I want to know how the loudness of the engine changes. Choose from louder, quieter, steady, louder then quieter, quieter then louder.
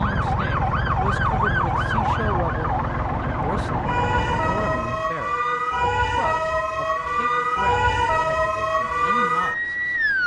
steady.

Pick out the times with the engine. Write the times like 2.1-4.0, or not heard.
0.0-5.2.